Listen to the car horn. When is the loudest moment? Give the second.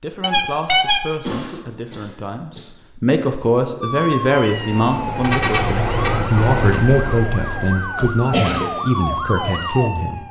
1 s.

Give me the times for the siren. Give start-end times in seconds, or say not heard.
3.8-10.2.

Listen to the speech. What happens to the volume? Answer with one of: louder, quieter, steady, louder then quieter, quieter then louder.
louder.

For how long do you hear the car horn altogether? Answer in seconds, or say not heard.
2 s.